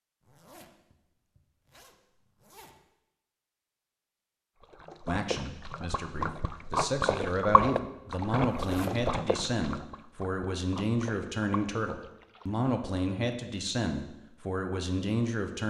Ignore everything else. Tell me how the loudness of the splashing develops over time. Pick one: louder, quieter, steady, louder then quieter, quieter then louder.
louder then quieter.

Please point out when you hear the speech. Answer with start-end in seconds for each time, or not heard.
5.0-15.6.